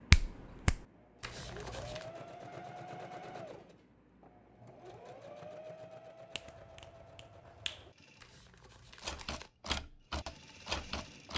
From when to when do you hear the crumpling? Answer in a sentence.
You can hear the crumpling from 1.2 to 2.1 s and from 8.2 to 9.5 s.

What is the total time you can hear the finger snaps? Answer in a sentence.
You can hear the finger snaps for 2 seconds altogether.